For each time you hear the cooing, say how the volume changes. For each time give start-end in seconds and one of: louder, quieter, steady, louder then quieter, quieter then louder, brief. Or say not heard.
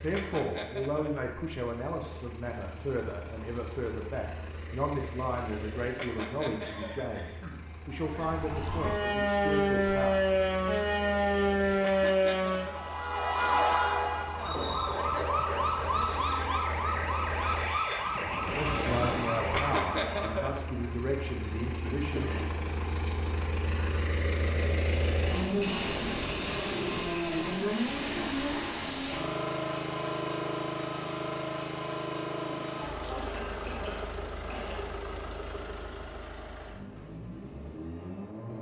not heard.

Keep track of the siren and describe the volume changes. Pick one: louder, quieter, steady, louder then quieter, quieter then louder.
quieter.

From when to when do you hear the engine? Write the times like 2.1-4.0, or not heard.
0.0-38.5.